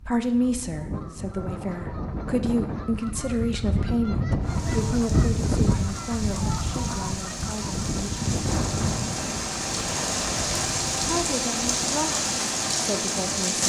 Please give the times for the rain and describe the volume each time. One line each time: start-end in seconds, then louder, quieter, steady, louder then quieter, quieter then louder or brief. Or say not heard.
4.4-13.6 louder.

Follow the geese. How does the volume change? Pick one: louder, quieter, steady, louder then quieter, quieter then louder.
louder then quieter.